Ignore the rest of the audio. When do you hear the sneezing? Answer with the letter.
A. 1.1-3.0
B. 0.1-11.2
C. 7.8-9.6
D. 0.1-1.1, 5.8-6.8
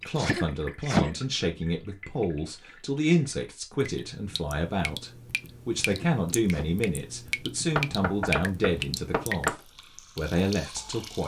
D.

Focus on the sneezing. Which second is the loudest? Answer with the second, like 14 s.
1 s.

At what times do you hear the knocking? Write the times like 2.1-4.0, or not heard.
7.8-9.6.